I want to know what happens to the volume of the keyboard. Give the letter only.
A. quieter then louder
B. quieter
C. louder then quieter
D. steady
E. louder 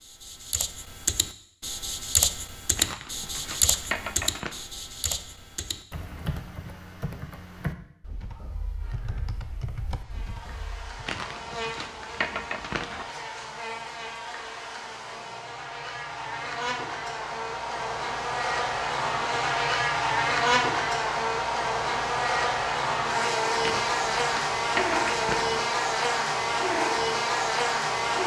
B.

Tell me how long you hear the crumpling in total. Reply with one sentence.
The crumpling can be heard for 6 seconds in total.